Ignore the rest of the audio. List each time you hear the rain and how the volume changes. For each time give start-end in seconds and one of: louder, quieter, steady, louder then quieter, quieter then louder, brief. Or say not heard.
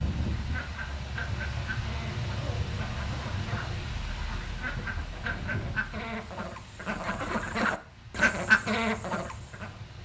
0.0-9.9 quieter.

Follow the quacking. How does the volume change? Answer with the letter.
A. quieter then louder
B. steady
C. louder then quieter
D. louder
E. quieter
D.